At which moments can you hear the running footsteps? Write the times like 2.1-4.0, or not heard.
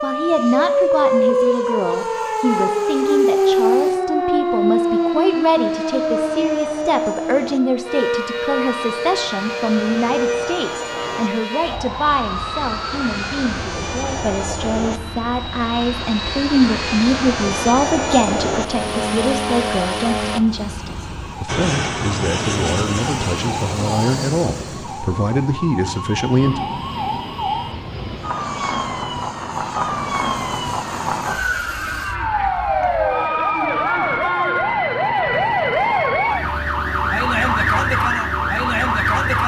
not heard.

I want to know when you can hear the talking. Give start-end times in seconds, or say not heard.
0.0-26.6.